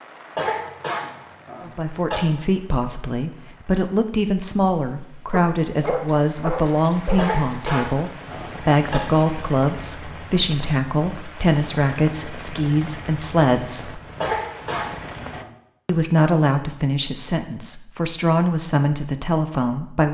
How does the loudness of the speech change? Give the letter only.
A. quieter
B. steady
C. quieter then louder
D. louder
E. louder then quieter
B.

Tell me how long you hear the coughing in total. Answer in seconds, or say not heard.
5 s.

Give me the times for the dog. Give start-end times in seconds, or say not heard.
5.3-8.0.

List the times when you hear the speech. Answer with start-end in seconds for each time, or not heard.
1.6-14.0, 15.8-20.0.